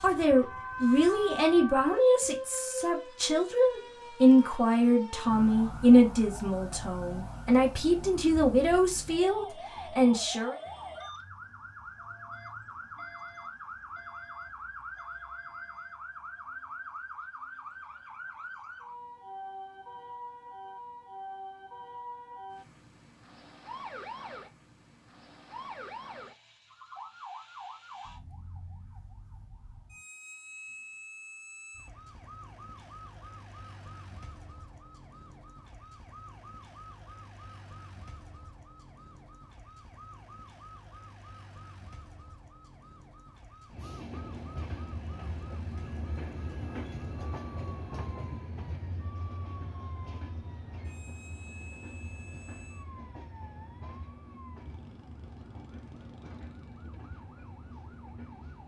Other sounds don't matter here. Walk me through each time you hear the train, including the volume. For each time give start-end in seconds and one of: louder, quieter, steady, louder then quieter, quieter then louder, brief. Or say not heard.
43.7-58.6 quieter.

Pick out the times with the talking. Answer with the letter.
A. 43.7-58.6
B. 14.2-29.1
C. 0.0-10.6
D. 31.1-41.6
C.